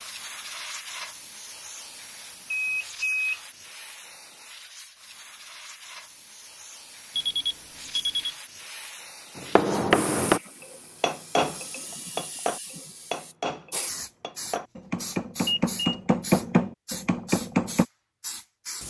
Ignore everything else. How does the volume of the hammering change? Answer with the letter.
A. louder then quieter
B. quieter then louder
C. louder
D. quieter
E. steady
B.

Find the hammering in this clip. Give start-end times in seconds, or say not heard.
9.3-17.9.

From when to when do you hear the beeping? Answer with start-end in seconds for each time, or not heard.
2.5-3.4, 7.2-8.3, 15.4-16.0.